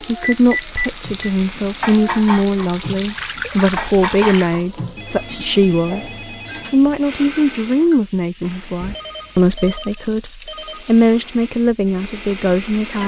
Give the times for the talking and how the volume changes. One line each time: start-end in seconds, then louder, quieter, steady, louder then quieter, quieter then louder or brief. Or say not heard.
0.1-13.0 steady.